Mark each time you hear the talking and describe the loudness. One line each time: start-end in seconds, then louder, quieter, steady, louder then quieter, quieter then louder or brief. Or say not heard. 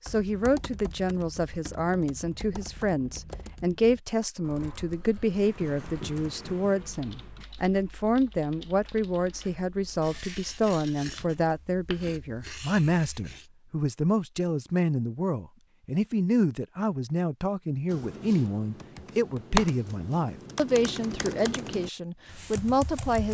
0.1-23.2 steady.